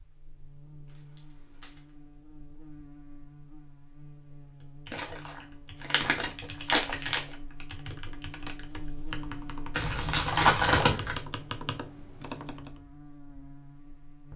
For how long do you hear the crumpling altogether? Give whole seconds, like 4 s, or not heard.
5 s.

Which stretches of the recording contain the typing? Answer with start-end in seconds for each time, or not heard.
4.6-12.7.